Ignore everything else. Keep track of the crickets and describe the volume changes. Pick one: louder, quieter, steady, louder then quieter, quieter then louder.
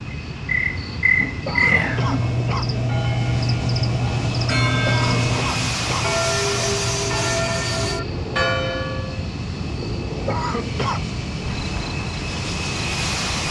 quieter.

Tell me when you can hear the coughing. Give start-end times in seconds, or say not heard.
1.4-2.6, 4.8-6.0, 10.2-11.1.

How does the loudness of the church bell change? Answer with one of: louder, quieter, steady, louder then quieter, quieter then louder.
louder.